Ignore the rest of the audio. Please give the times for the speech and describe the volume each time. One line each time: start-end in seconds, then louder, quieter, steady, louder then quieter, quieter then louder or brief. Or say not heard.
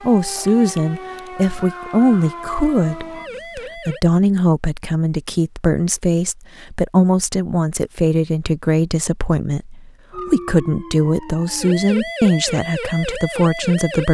0.0-14.0 steady.